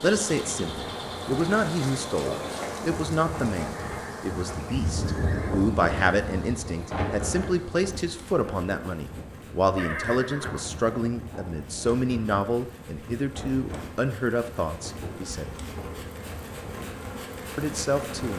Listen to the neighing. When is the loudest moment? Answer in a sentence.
The volume of the neighing peaks at 10 seconds.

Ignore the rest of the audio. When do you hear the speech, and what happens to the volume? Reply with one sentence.
You can hear the speech from 0.0 to 15.7 s, at a steady volume; and briefly from 17.6 to 18.3 s.